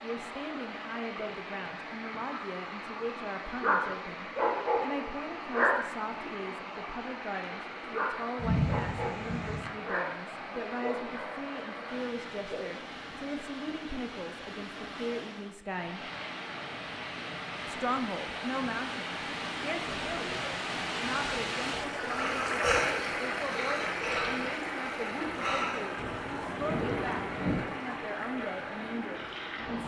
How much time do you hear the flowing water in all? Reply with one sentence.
The flowing water can be heard for 30 seconds in total.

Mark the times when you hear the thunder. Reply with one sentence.
You can hear the thunder from 8.3 to 9.7 s and from 25.9 to 27.6 s.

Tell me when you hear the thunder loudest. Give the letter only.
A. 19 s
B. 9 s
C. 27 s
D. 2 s
B.